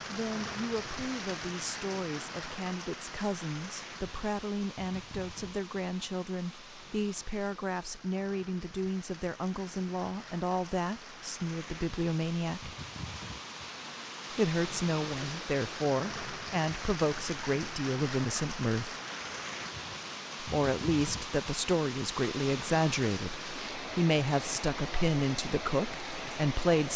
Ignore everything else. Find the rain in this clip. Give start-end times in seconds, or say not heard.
0.0-26.9.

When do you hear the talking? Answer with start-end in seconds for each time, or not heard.
0.1-12.8, 14.3-18.9, 20.4-26.9.